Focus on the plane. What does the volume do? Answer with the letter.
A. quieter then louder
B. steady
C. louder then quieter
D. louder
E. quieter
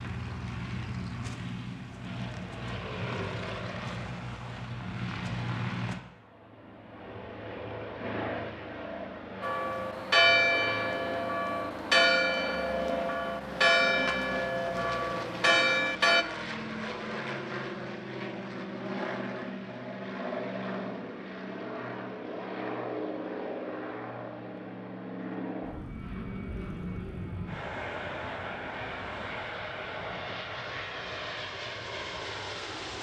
B.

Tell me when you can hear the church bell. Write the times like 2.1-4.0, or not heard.
9.4-16.2.